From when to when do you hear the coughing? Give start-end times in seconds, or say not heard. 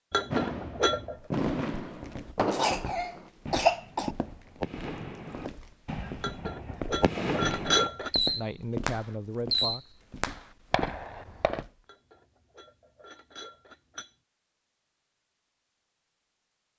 2.5-4.2.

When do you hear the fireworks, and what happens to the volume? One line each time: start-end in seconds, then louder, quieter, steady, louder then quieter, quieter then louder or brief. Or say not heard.
0.3-11.7 quieter then louder.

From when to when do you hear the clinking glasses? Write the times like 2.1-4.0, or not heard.
0.1-1.2, 6.2-8.1, 11.8-14.1.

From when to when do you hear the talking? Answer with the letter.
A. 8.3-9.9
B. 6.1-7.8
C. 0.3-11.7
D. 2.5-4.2
A.